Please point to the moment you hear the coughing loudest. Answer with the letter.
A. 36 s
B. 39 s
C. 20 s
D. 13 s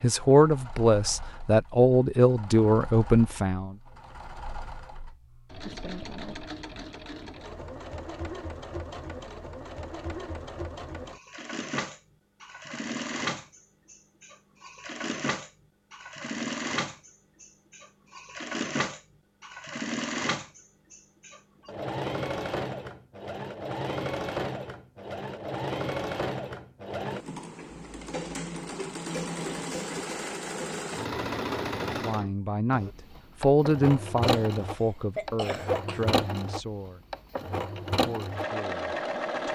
A.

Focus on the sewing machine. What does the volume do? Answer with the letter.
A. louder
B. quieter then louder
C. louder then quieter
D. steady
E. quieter
A.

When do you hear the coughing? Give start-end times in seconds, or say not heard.
34.2-36.1.